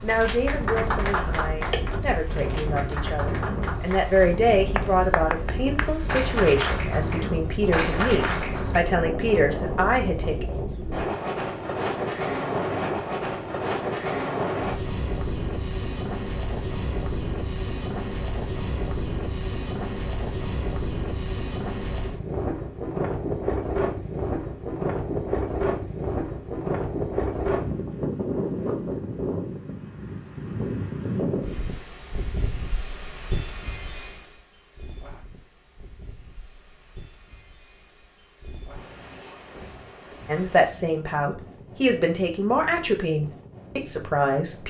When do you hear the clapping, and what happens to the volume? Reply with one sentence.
The clapping can be heard from 0.1 to 8.8 s, getting quieter then louder.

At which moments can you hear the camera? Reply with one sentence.
The camera can be heard from 1.7 to 2.2 s.